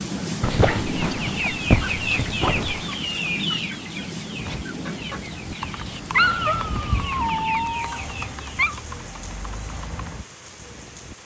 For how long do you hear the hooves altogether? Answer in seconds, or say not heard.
7 s.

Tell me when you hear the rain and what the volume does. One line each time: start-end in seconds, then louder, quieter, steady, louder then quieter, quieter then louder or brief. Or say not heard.
0.0-11.2 quieter.